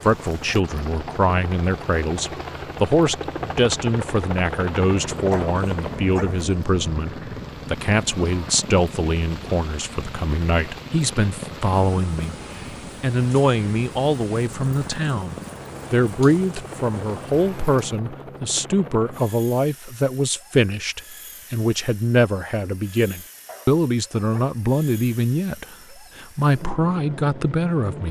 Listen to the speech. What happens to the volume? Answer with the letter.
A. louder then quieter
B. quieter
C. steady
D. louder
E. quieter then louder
C.